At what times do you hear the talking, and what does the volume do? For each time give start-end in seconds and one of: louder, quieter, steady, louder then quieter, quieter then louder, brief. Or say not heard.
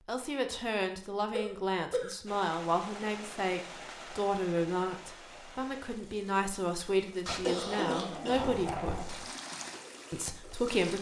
0.1-9.0 steady
10.1-10.9 brief.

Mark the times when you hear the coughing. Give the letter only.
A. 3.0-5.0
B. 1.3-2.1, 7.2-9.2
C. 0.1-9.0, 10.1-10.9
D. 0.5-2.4
B.